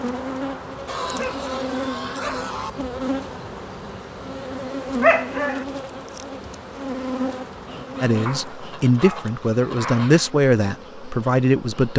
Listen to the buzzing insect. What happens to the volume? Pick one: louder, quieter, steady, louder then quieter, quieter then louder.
quieter.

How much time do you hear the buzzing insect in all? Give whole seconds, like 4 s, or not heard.
12 s.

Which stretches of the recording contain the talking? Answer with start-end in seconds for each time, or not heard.
8.0-11.9.